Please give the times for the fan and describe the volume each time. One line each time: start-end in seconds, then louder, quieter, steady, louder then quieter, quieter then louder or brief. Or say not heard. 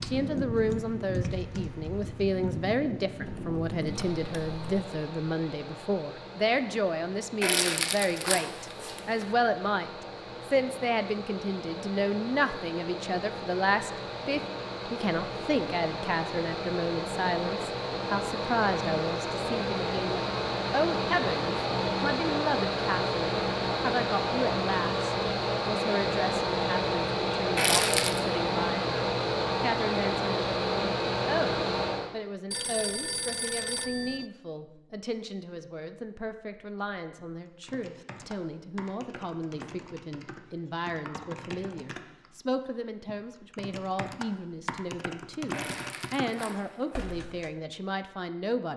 0.0-32.1 louder.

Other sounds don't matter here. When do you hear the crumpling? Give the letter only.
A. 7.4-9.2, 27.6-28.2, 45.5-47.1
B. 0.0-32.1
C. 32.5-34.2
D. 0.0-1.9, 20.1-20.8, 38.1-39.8
A.